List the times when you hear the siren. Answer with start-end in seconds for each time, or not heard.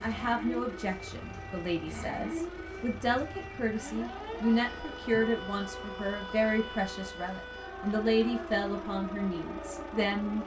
0.0-10.4.